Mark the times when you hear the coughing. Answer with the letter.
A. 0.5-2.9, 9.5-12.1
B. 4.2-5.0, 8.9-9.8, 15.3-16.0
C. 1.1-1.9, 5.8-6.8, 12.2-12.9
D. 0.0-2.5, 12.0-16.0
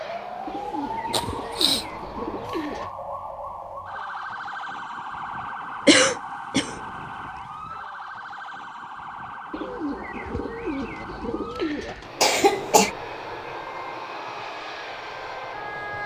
C.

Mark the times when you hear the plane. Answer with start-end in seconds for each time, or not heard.
0.0-2.5, 12.0-16.0.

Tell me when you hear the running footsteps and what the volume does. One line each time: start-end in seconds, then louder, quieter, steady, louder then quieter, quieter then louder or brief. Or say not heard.
not heard.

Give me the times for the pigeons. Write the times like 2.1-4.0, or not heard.
0.5-2.9, 9.5-12.1.